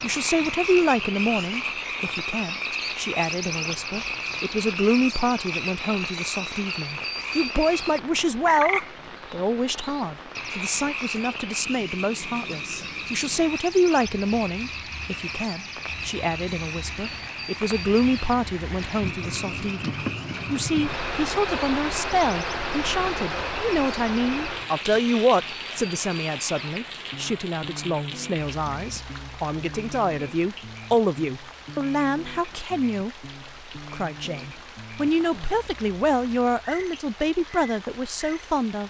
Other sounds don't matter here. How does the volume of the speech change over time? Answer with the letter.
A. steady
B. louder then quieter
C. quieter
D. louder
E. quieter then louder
A.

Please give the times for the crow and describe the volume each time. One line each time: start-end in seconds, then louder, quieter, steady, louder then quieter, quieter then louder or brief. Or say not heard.
not heard.